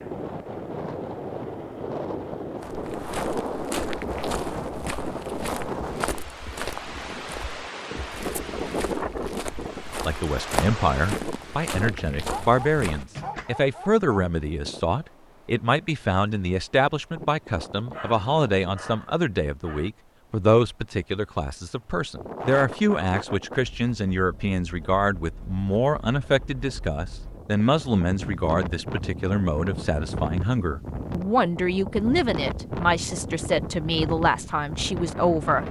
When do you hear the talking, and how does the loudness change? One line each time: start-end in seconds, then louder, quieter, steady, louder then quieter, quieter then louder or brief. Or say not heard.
10.1-35.6 steady.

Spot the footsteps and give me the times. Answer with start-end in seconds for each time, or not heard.
2.6-13.1.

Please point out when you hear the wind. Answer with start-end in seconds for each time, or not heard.
0.0-35.6.